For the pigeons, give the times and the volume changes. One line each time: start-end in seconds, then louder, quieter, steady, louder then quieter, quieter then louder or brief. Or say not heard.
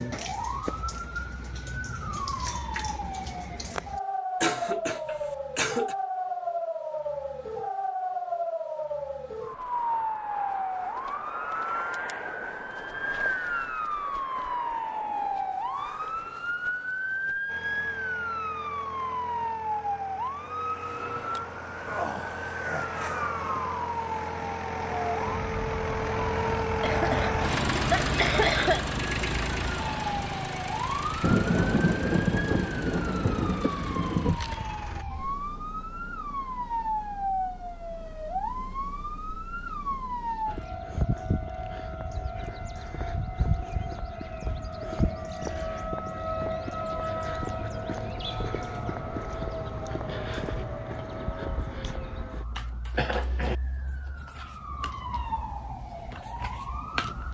not heard.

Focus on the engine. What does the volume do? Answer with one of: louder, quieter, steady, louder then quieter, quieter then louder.
louder then quieter.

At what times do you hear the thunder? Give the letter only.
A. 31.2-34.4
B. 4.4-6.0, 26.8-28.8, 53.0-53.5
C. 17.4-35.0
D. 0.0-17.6
A.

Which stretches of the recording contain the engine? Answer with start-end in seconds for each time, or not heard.
17.4-35.0.